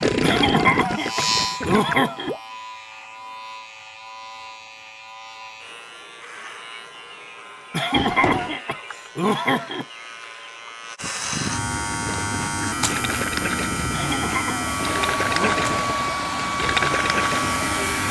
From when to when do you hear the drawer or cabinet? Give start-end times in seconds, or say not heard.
7.9-8.6.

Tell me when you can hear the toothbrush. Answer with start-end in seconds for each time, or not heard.
not heard.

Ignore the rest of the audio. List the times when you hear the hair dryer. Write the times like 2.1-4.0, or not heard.
14.5-18.0.